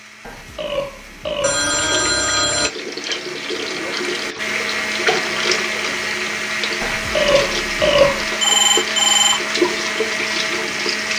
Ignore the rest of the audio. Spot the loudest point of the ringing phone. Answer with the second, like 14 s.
9 s.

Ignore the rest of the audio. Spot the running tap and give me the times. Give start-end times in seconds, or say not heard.
1.7-11.1.